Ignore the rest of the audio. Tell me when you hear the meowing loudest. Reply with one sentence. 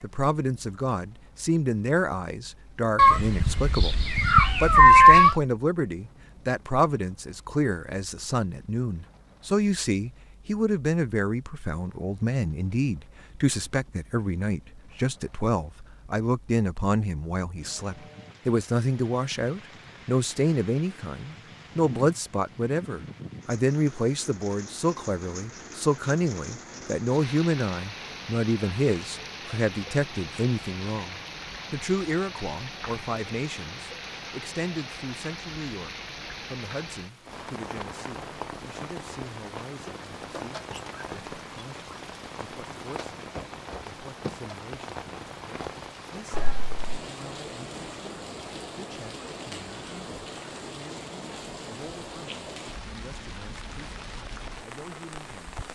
The volume of the meowing peaks at 5 seconds.